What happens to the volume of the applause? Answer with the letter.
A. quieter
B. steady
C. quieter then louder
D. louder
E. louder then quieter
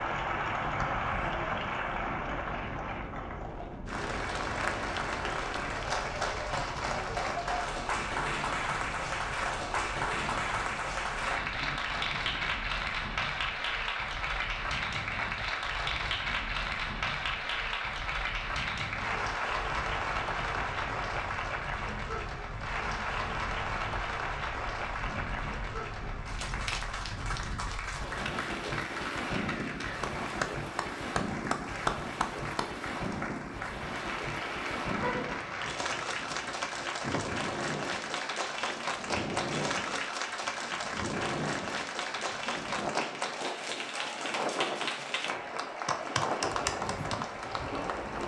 B.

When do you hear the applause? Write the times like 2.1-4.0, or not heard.
0.0-48.2.